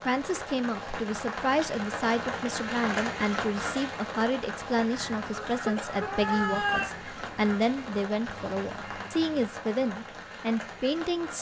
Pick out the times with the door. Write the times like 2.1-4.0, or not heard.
not heard.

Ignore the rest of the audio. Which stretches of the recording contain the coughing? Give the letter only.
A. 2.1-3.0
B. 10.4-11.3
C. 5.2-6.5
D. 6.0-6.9
C.